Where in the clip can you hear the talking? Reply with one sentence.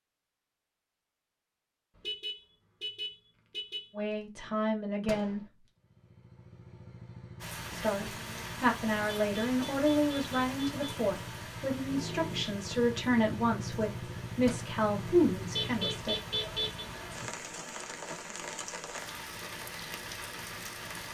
The talking can be heard from 4.0 to 5.5 s and from 7.7 to 16.2 s.